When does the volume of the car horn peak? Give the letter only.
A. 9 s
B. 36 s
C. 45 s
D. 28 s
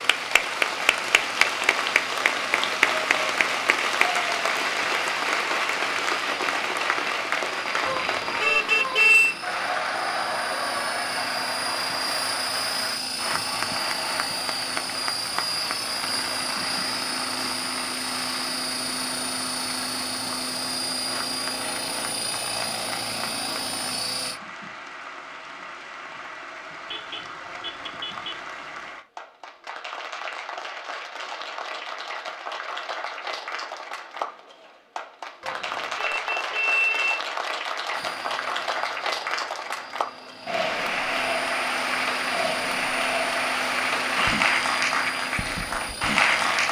A.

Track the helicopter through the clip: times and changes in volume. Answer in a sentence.
The helicopter can be heard from 0.0 to 24.4 s, getting louder; and from 37.9 to 46.6 s, getting louder.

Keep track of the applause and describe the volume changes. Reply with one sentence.
The loudness of the applause goes down, then up.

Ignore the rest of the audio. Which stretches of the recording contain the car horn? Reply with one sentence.
The car horn can be heard from 7.8 to 9.3 s, from 26.9 to 28.4 s and from 35.4 to 37.2 s.